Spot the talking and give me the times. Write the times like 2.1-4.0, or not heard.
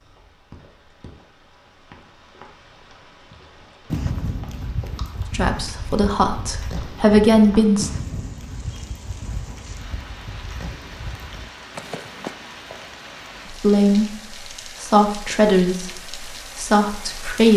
5.3-7.9, 13.5-17.5.